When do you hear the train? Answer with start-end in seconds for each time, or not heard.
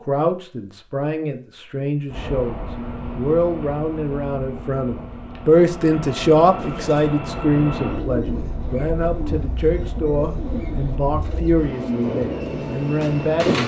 2.0-13.6.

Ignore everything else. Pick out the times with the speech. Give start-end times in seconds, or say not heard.
0.0-13.6.